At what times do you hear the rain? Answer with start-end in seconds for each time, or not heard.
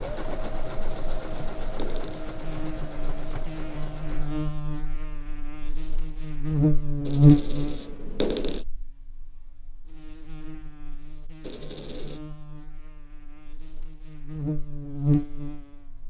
not heard.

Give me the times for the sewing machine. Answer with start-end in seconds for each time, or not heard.
0.0-4.5.